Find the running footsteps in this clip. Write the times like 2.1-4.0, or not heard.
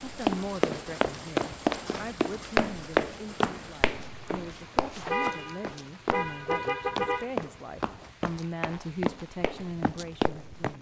0.1-10.7.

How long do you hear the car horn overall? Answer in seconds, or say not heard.
2 s.